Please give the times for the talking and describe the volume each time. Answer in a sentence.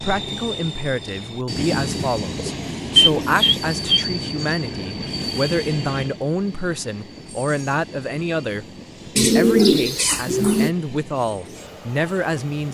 The talking can be heard from 0.0 to 12.6 s, at a steady volume.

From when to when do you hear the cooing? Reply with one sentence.
The cooing can be heard from 1.6 to 4.0 s and from 9.2 to 10.7 s.